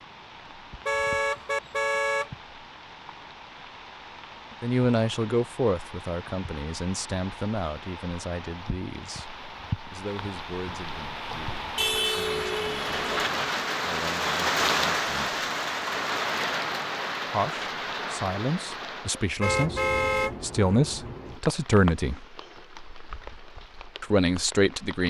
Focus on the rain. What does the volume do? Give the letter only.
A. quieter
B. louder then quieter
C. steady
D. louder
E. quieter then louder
B.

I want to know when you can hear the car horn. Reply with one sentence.
You can hear the car horn from 0.8 to 2.3 s, from 11.8 to 13.2 s and from 19.4 to 20.4 s.